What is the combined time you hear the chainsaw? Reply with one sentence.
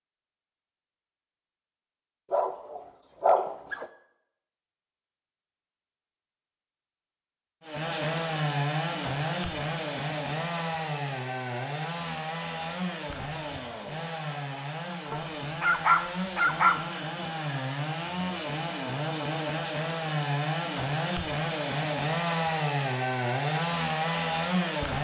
The chainsaw can be heard for 17 seconds in total.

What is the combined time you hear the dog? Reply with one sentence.
You can hear the dog for 3 seconds altogether.